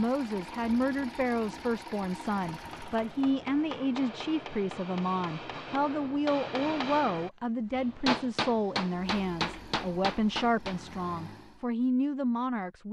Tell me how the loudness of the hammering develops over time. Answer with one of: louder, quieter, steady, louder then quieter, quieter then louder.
louder.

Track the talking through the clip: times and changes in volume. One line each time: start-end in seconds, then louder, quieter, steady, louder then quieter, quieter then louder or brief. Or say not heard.
0.0-12.8 steady.